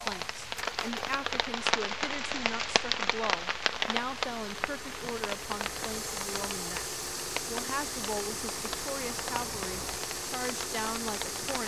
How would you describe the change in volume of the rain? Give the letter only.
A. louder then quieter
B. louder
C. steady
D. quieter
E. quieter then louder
D.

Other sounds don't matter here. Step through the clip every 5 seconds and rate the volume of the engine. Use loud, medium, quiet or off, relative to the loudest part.
medium, loud, loud.